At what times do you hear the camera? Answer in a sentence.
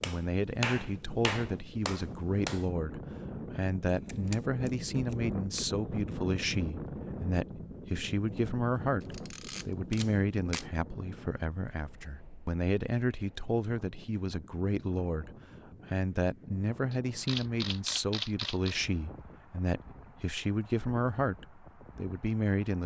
The camera can be heard from 4.0 to 5.7 s, from 9.0 to 10.7 s and from 16.9 to 18.8 s.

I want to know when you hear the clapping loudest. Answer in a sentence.
The loudest moment of the clapping is at 1 second.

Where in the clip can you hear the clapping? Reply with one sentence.
The clapping can be heard from 0.0 to 2.6 s.